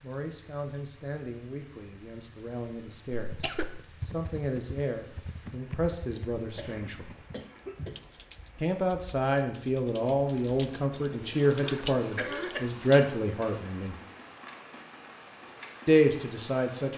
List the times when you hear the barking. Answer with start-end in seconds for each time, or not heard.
not heard.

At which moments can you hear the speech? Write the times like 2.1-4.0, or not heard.
0.0-7.2, 8.6-13.9, 15.8-16.9.